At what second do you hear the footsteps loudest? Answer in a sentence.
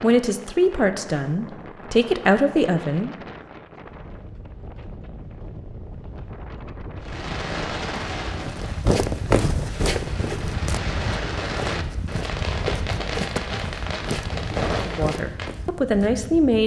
The loudest moment of the footsteps is at 9 seconds.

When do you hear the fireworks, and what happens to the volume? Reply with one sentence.
You can hear the fireworks from 7.0 to 15.6 s, getting quieter then louder.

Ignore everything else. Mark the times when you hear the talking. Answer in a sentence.
You can hear the talking from 0.0 to 3.1 s and from 14.8 to 16.6 s.